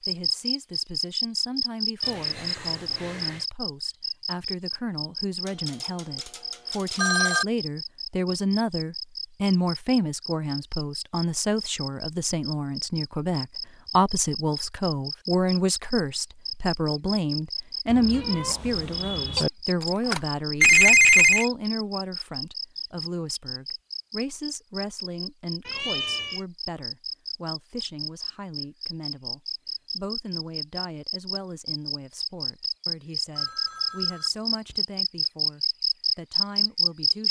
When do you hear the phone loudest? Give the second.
21 s.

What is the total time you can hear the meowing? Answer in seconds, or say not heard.
4 s.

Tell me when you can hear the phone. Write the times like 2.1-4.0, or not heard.
5.5-7.5, 19.4-21.5, 33.4-34.8.